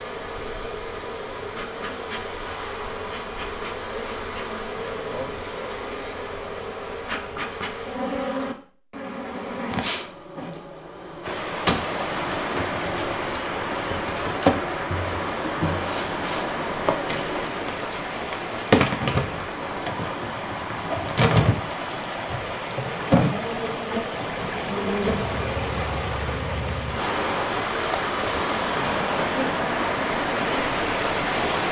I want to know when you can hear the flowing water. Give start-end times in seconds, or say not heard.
11.2-31.6.